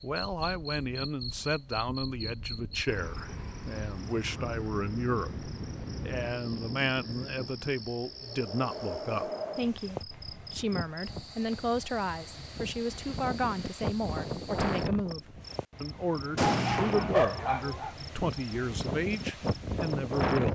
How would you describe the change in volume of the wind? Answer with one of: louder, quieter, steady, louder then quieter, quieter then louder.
louder.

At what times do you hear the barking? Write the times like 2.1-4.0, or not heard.
16.4-17.9.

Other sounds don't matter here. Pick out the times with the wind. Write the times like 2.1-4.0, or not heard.
0.2-20.5.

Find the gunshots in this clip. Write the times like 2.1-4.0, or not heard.
16.4-17.6.